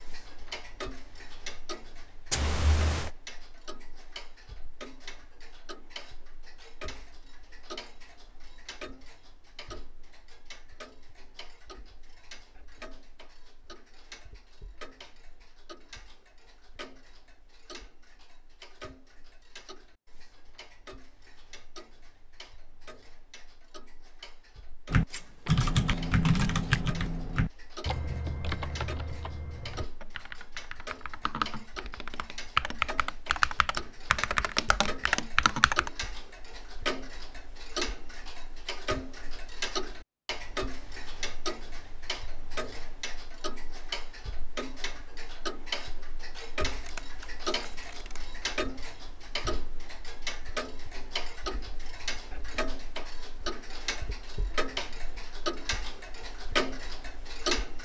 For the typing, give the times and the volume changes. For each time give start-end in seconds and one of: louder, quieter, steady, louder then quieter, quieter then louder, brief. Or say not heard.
24.9-35.9 quieter then louder.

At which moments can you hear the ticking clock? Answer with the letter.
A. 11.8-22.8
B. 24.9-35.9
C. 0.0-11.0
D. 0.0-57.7
D.